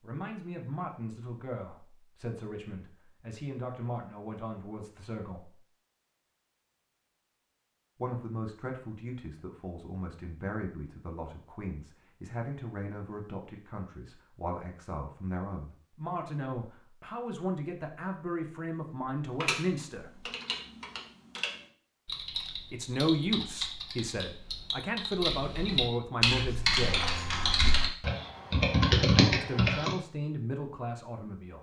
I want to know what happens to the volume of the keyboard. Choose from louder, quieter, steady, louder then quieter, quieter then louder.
louder.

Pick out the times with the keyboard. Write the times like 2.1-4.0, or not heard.
19.4-29.9.